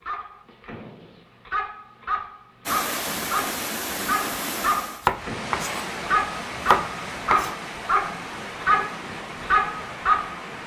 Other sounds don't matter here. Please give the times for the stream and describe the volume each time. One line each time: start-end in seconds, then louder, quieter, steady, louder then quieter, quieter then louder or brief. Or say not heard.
2.6-10.6 quieter.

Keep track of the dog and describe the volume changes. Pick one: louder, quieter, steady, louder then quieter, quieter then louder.
louder.